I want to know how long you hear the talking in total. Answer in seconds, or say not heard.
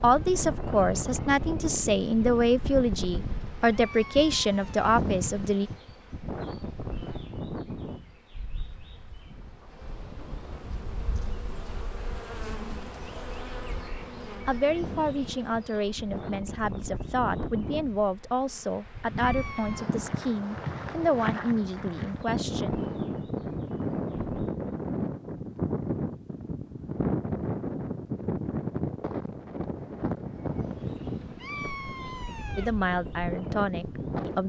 16 s.